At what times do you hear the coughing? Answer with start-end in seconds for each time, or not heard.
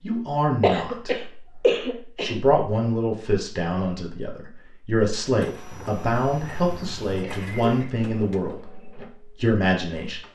0.6-2.4, 5.7-8.1.